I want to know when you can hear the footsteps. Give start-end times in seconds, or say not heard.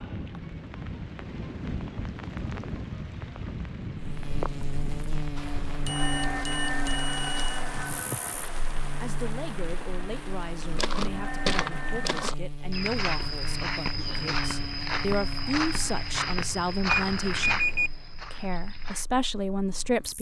10.6-19.1.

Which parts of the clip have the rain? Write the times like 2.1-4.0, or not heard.
0.0-12.3.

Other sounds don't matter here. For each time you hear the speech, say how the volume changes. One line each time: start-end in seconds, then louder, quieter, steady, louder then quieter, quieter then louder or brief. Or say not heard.
8.9-17.6 louder
18.3-20.1 brief.